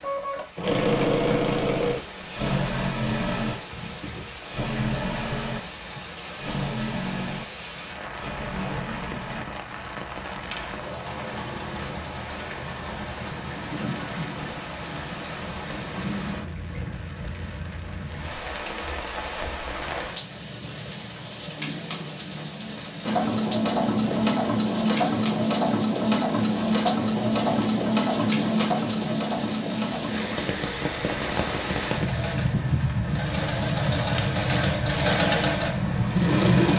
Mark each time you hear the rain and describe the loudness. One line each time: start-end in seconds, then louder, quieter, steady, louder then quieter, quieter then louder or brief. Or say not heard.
0.0-36.7 louder.